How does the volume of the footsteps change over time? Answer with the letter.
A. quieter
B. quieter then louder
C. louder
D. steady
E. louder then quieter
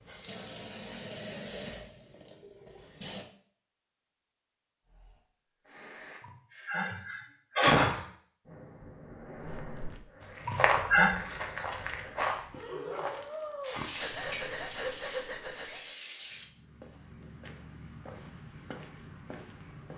A.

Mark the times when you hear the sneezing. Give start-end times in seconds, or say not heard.
6.7-8.1, 10.4-11.2.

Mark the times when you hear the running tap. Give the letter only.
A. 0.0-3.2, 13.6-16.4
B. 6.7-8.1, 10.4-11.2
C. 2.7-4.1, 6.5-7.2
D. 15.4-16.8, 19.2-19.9
A.